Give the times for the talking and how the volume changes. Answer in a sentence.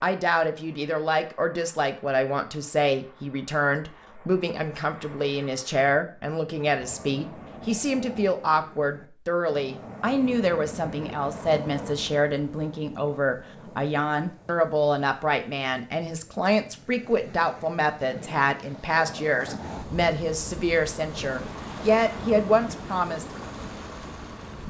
You can hear the talking from 0.0 to 23.2 s, at a steady volume.